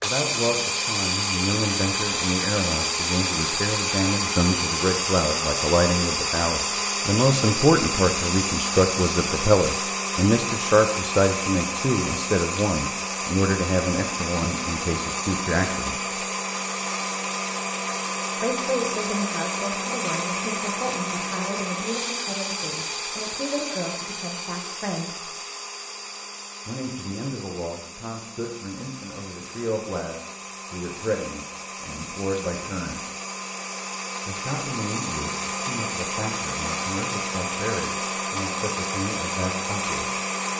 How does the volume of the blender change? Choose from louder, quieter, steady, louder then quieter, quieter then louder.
quieter then louder.